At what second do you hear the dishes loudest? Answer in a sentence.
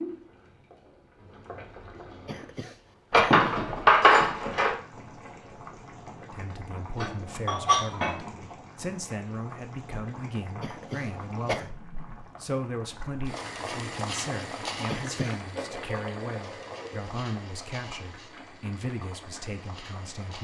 The loudest moment of the dishes is at 4 seconds.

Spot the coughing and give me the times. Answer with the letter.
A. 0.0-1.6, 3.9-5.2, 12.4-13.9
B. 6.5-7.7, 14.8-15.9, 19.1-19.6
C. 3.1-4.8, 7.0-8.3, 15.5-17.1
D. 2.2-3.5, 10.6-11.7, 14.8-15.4
D.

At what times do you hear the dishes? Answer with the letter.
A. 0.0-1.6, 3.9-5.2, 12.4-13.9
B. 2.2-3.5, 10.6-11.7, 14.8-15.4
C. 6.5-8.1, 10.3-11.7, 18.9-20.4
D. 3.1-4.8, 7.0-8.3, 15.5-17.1
D.